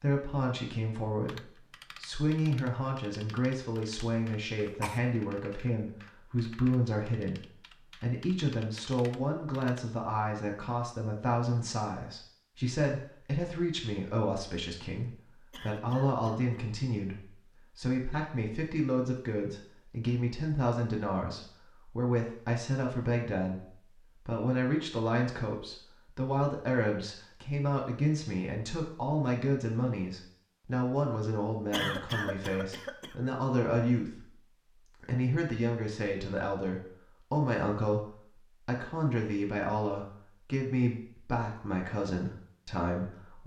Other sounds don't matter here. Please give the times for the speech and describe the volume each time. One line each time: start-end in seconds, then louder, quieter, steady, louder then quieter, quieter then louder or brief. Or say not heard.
0.0-43.4 steady.